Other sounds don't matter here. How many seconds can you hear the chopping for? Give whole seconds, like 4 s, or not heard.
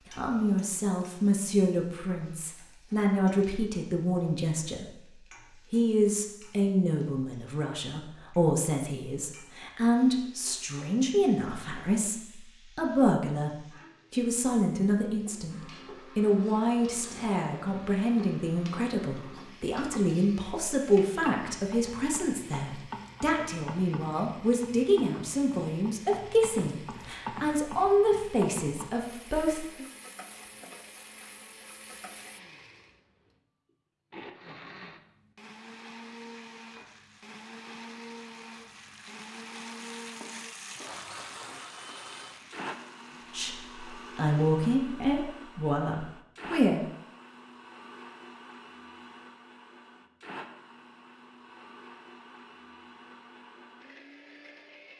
not heard.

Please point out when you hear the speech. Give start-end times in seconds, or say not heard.
0.1-4.8, 5.7-29.9, 43.3-46.8.